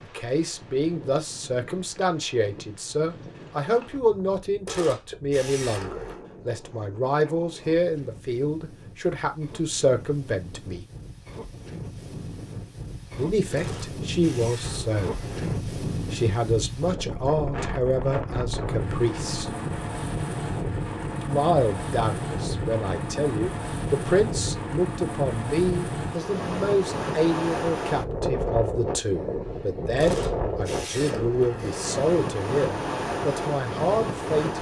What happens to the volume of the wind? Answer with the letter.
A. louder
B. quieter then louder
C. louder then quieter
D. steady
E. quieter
A.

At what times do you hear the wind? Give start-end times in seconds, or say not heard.
0.0-34.5.